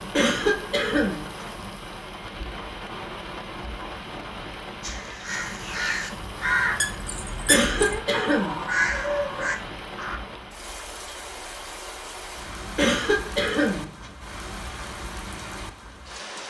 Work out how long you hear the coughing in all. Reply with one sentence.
You can hear the coughing for 4 seconds altogether.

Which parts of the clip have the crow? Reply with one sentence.
The crow can be heard from 4.8 to 10.2 s.